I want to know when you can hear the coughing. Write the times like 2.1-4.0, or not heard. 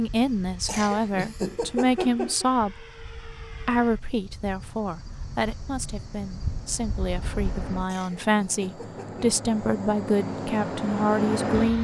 0.7-2.5, 7.8-9.2.